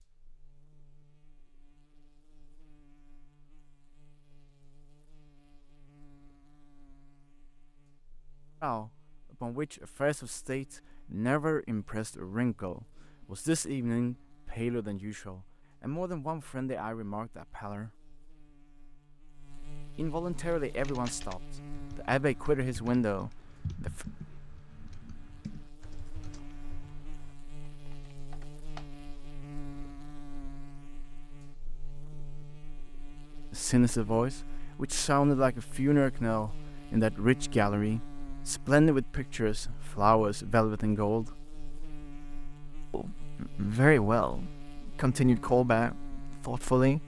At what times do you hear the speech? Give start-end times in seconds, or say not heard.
8.6-17.9, 19.9-24.1, 33.5-41.4, 42.9-47.0.